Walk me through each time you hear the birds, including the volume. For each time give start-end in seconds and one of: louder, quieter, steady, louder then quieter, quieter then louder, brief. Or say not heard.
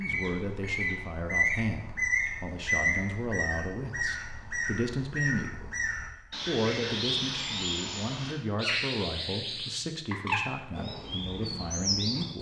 0.0-12.3 steady.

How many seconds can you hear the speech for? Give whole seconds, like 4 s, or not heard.
12 s.